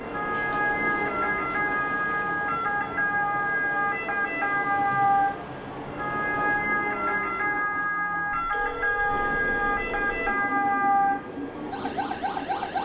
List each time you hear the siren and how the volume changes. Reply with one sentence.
The siren can be heard from 0.0 to 12.8 s, at a steady volume.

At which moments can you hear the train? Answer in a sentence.
The train can be heard from 0.0 to 6.7 s and from 9.1 to 12.8 s.